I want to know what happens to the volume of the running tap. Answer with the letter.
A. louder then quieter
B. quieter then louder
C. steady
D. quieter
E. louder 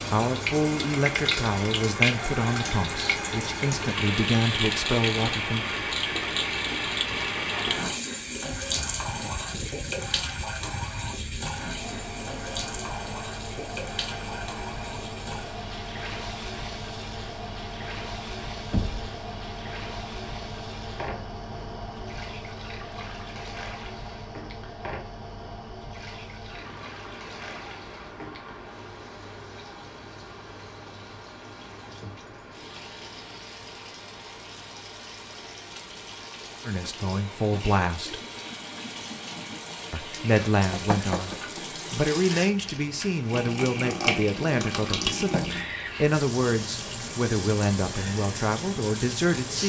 B.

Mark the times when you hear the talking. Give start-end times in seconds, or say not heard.
0.1-5.7, 36.6-38.2, 39.9-49.6.